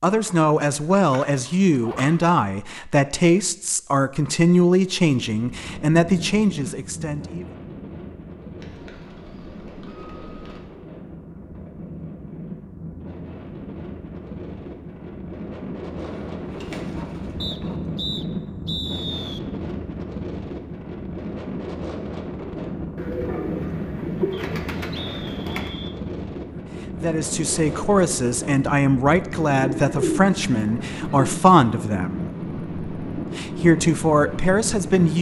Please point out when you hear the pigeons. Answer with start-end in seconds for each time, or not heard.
0.1-2.0, 8.6-10.6, 16.0-17.8, 22.9-25.7, 29.4-31.4.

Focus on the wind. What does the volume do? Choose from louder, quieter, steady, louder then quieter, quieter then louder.
louder.